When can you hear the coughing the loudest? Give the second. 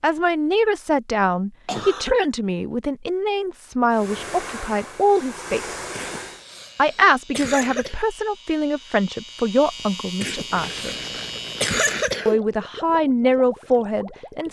12 s.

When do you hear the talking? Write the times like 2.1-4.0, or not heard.
0.0-5.8, 6.8-11.1, 12.2-14.4.